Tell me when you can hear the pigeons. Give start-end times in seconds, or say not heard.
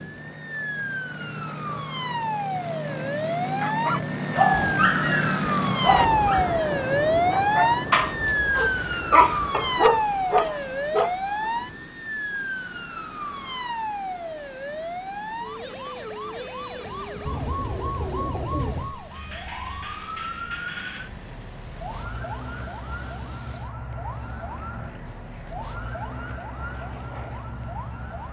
17.2-18.9.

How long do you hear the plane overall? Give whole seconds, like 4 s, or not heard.
28 s.